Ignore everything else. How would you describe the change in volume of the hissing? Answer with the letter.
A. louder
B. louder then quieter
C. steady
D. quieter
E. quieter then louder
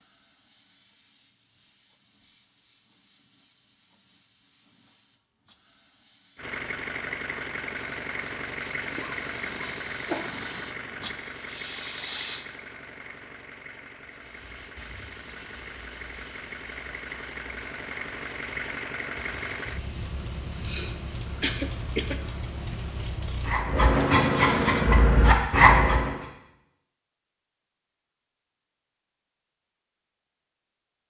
A.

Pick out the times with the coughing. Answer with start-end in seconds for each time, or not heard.
8.9-10.5, 20.5-22.2.